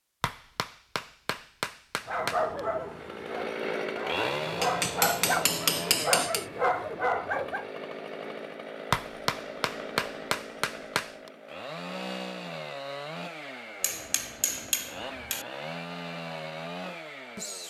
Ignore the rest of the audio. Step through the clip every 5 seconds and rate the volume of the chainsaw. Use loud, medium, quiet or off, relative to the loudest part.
loud, medium, medium, medium.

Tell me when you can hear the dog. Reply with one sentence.
The dog can be heard from 2.0 to 7.7 s.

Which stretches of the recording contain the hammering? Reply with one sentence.
The hammering can be heard from 0.2 to 2.6 s, from 4.6 to 6.5 s, from 8.9 to 11.3 s and from 13.8 to 15.4 s.